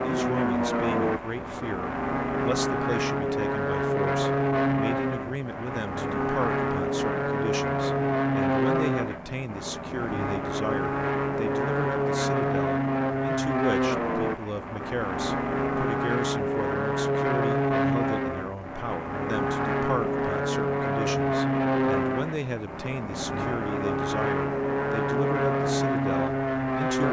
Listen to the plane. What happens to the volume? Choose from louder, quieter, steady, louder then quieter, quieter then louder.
steady.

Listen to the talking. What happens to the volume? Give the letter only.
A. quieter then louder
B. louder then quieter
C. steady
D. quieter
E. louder
C.